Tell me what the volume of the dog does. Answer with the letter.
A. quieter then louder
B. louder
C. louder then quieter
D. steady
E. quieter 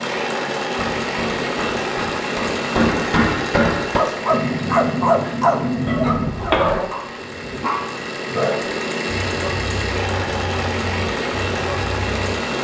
E.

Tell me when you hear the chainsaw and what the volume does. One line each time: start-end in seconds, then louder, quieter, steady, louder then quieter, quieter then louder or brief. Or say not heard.
0.0-12.5 quieter then louder.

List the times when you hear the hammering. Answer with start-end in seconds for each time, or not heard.
0.8-6.8.